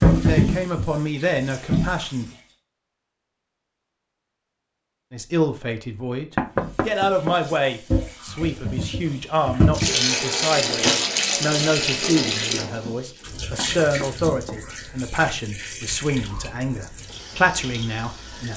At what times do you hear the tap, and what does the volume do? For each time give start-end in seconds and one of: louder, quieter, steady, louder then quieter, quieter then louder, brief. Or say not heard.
0.0-2.4 brief
6.5-18.5 louder then quieter.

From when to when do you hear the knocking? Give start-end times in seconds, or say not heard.
6.3-7.5, 13.6-14.8.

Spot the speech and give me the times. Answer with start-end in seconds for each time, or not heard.
0.2-2.2, 5.1-18.5.